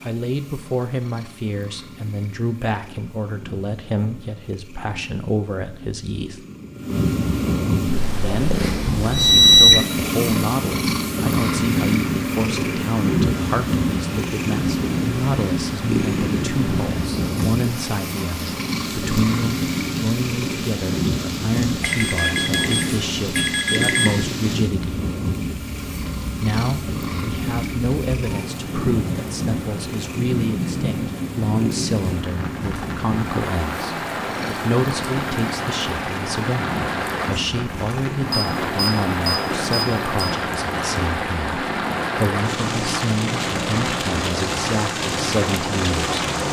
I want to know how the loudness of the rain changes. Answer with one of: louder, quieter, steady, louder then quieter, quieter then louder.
louder.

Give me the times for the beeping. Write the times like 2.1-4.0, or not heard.
9.1-9.8, 21.8-24.1, 38.3-40.3.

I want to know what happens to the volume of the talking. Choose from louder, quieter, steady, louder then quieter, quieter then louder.
steady.